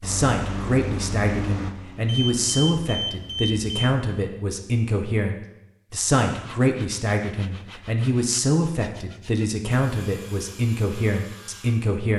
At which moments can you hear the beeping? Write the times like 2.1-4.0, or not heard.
2.0-3.9.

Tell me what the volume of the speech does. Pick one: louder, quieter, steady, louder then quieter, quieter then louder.
steady.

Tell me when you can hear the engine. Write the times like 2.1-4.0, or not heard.
0.0-2.7.